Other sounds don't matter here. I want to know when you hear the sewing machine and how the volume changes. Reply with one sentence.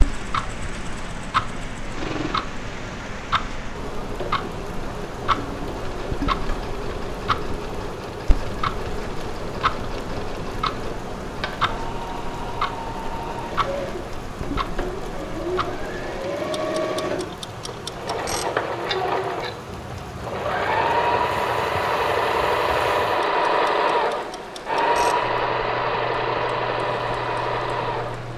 The sewing machine can be heard from 0.1 to 28.3 s, getting louder.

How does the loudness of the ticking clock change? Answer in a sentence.
The loudness of the ticking clock goes down.